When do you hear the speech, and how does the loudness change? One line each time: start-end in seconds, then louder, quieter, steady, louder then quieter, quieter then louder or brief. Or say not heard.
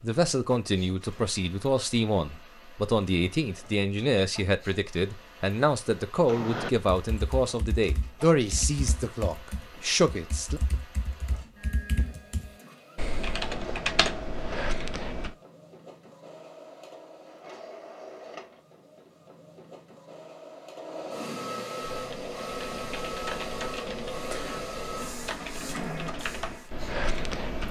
0.0-10.6 steady.